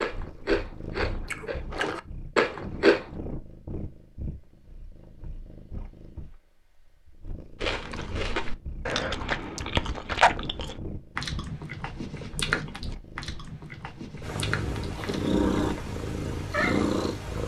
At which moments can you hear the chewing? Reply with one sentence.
You can hear the chewing from 0.0 to 3.1 s and from 7.6 to 15.9 s.